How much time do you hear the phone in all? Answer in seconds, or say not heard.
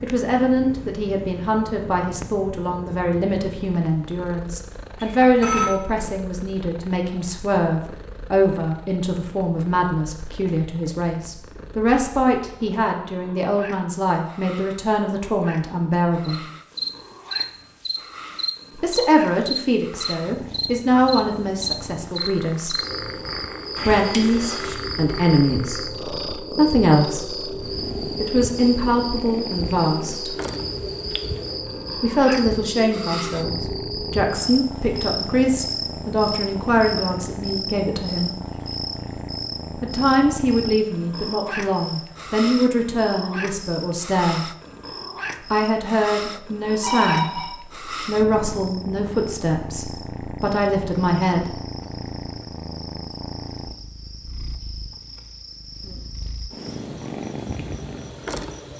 3 s.